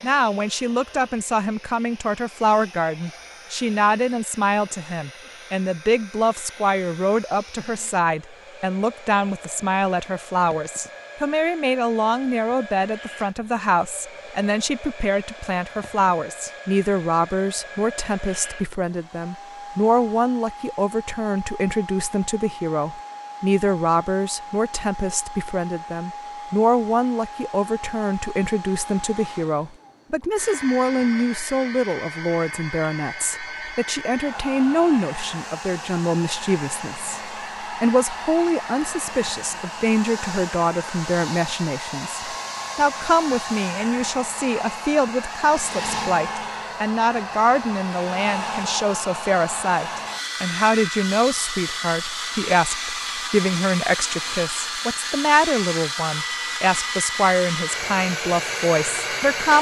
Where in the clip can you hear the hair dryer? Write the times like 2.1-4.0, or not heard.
0.0-59.5.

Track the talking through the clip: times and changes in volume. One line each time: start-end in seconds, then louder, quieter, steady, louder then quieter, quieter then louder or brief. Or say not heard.
0.0-59.5 steady.